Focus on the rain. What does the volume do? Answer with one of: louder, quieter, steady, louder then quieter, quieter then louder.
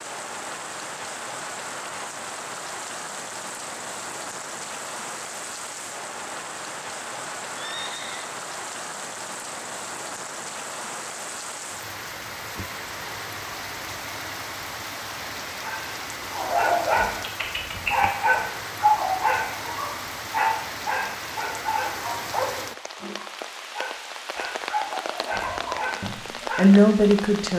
steady.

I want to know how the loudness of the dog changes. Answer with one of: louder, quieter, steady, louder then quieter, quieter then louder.
quieter.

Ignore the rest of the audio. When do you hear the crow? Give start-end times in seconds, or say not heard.
not heard.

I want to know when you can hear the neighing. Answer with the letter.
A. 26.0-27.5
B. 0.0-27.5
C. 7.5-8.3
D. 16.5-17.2
C.